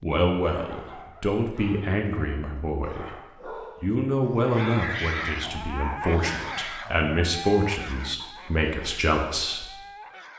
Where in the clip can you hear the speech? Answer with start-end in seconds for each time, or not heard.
0.0-9.7.